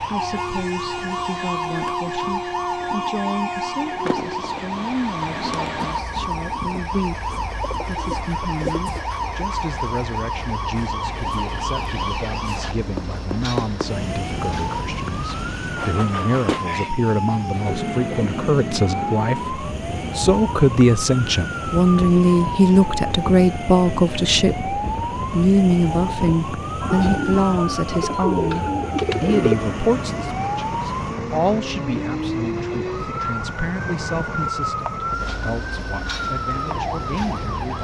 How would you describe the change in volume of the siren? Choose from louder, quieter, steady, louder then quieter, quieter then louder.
steady.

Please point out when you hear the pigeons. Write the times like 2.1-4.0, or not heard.
7.3-9.0, 26.8-29.6.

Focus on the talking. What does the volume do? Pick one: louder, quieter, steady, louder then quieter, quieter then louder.
louder then quieter.